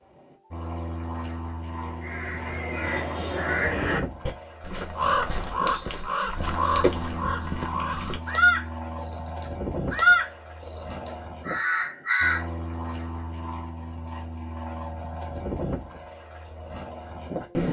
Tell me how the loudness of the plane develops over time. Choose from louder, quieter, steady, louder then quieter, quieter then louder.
steady.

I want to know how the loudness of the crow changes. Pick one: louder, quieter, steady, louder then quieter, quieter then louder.
louder then quieter.